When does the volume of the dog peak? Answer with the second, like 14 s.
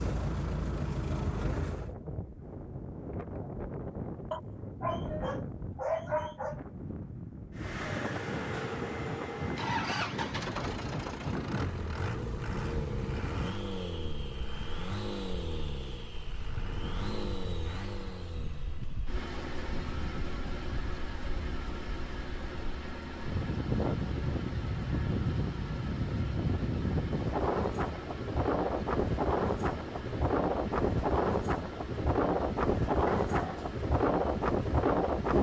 6 s.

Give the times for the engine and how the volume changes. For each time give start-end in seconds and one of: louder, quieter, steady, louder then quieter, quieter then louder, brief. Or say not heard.
0.0-1.9 brief
7.5-35.3 quieter.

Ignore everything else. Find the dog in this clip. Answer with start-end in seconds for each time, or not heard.
4.3-6.5, 33.1-33.6.